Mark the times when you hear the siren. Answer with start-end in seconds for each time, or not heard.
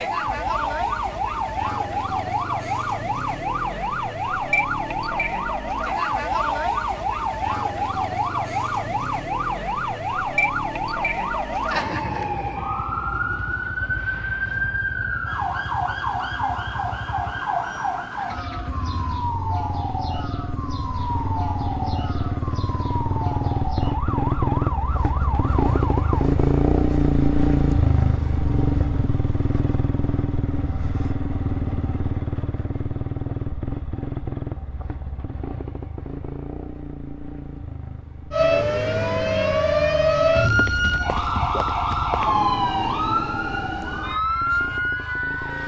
0.0-26.3, 38.3-45.6.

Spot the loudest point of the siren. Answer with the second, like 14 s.
40 s.